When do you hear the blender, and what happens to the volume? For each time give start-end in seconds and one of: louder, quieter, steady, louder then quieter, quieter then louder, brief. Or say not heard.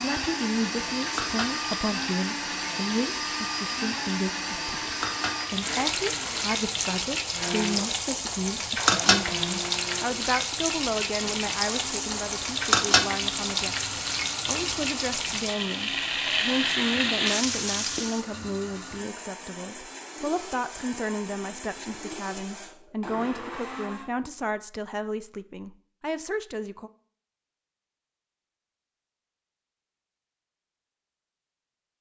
0.0-24.1 quieter.